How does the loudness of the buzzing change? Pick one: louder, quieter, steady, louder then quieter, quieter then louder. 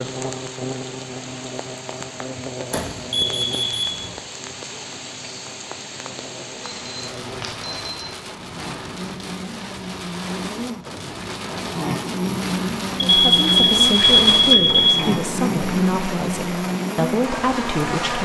quieter then louder.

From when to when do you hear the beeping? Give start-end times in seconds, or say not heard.
2.7-4.2, 6.6-8.2, 13.2-15.0.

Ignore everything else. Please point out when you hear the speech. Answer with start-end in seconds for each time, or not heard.
12.9-18.2.